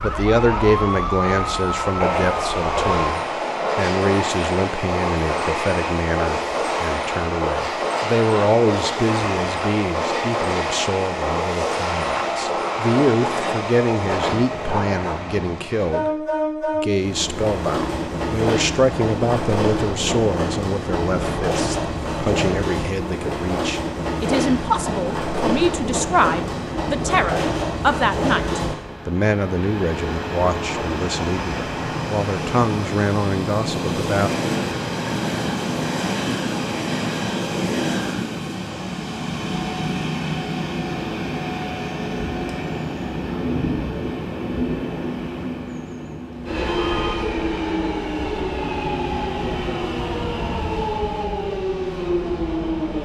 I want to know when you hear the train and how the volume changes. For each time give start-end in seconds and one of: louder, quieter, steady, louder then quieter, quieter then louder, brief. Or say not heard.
0.0-53.0 steady.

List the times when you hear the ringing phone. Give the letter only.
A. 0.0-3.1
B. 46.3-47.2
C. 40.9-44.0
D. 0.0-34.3
B.